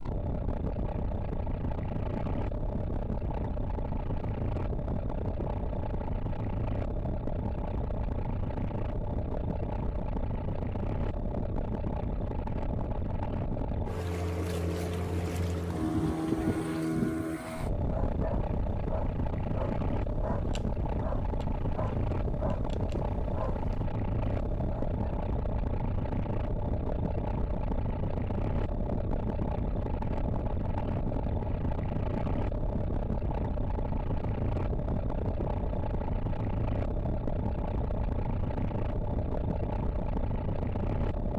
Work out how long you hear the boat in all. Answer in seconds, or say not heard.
41 s.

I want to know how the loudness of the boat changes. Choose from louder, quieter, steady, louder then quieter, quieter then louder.
steady.